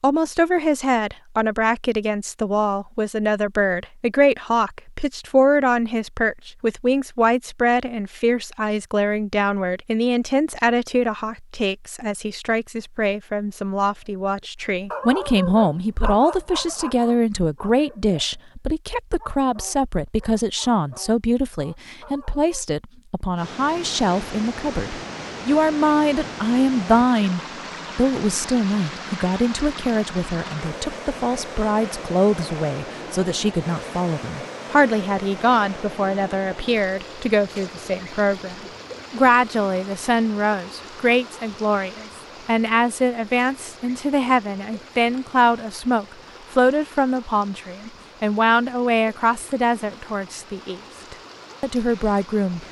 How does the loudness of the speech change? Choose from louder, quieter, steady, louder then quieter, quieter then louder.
steady.